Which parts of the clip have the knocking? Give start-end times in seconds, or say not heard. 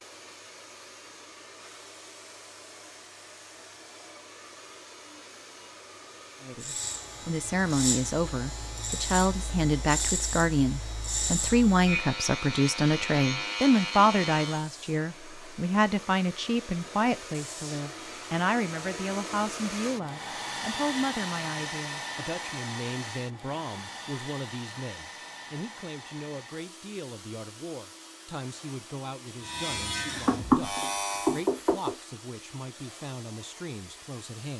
30.2-31.9.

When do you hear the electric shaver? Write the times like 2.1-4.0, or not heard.
6.6-14.7, 29.4-31.4.